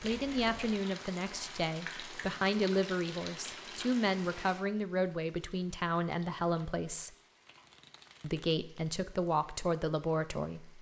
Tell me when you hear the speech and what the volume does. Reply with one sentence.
You can hear the speech from 0.0 to 7.2 s, at a steady volume; and briefly from 8.2 to 10.7 s.